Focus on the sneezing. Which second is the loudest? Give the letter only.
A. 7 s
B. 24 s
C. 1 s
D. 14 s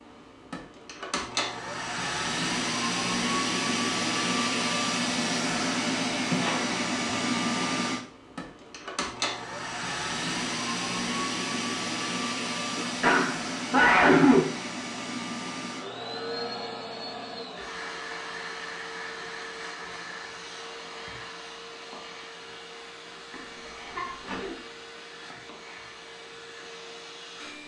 D.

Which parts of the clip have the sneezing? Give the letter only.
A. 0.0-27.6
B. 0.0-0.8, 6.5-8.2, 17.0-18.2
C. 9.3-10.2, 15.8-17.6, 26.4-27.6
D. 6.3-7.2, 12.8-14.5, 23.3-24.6
D.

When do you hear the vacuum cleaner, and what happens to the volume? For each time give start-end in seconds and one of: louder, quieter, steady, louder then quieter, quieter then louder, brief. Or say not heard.
0.0-27.6 quieter.